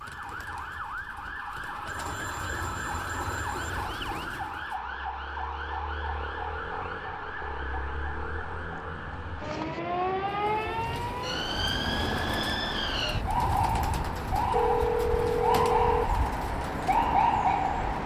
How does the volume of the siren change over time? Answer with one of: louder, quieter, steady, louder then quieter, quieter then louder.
louder.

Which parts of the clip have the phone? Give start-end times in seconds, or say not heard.
1.9-3.7, 14.5-16.1.